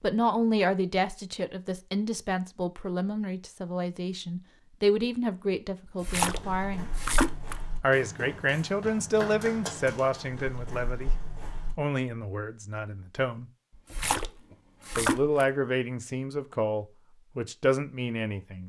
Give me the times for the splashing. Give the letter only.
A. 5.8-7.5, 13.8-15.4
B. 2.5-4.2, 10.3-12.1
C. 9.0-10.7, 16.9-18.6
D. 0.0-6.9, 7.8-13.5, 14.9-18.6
A.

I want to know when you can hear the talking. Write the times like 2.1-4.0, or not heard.
0.0-6.9, 7.8-13.5, 14.9-18.6.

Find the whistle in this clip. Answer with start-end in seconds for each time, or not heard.
not heard.